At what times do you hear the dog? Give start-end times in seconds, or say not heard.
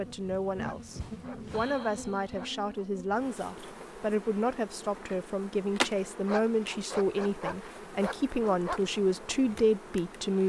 0.6-2.9, 6.2-8.8.